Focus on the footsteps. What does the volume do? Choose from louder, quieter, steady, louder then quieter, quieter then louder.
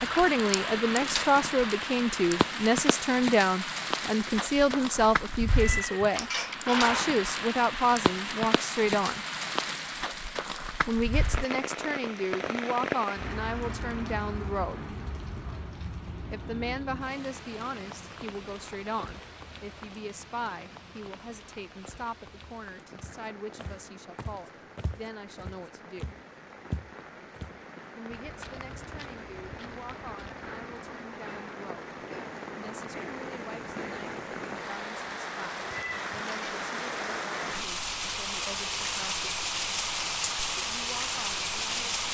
louder then quieter.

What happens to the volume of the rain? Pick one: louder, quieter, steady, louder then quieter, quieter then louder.
quieter then louder.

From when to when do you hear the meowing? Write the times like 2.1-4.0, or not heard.
5.5-7.2, 35.7-36.4.